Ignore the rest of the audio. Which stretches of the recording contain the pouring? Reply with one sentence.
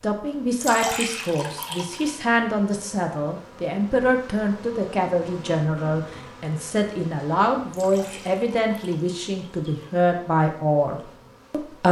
You can hear the pouring from 0.6 to 2.1 s and from 7.7 to 9.9 s.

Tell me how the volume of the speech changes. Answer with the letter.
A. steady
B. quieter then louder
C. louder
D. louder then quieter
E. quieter
A.